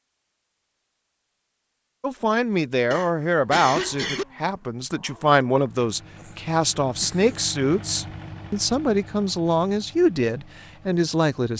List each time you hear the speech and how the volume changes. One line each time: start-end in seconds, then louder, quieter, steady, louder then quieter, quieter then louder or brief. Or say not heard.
2.0-11.5 steady.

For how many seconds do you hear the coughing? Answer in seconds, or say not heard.
3 s.